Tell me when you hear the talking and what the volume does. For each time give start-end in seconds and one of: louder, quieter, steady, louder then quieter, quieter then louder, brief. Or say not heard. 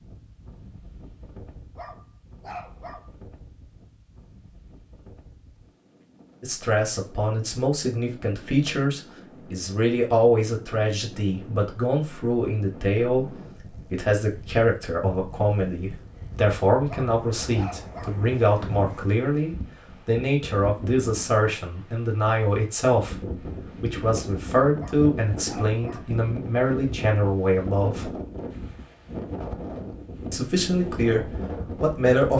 6.4-28.1 steady
30.3-32.3 brief.